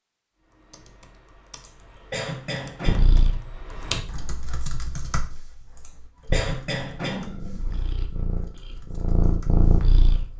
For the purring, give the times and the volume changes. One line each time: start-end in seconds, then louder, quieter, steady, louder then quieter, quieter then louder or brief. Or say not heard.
2.9-4.3 brief
6.2-10.3 louder.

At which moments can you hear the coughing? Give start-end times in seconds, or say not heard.
1.6-3.2, 5.8-7.7.